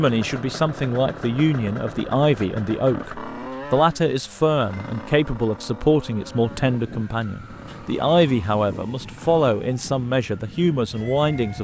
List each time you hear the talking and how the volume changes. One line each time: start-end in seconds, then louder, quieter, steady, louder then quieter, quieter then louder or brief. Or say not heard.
0.0-11.6 steady.